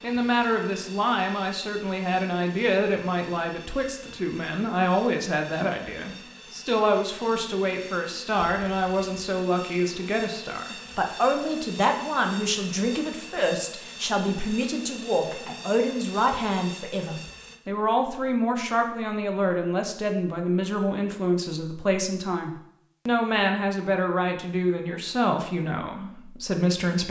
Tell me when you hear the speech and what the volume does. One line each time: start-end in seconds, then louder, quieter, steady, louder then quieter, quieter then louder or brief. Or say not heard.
0.0-27.0 steady.